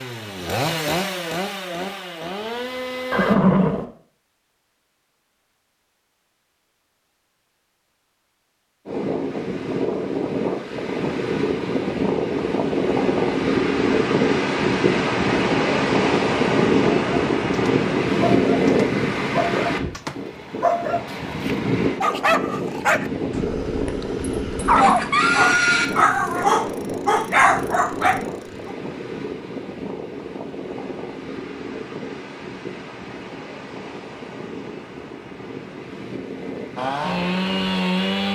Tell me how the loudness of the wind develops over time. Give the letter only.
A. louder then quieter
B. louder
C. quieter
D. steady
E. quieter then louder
C.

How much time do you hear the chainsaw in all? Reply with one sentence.
The chainsaw can be heard for 5 seconds in total.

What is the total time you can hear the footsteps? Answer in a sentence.
The footsteps can't be heard in this clip.